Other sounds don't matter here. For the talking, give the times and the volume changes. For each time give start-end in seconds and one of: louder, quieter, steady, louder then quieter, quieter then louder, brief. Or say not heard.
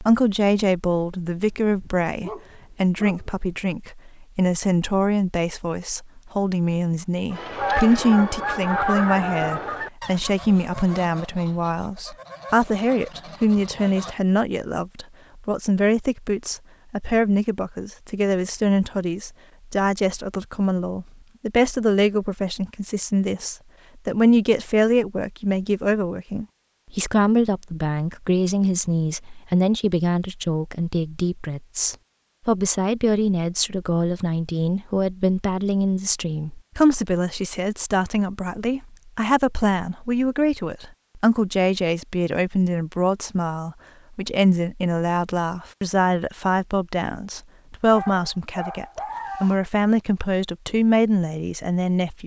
0.0-52.2 steady.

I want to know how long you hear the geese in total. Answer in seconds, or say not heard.
7 s.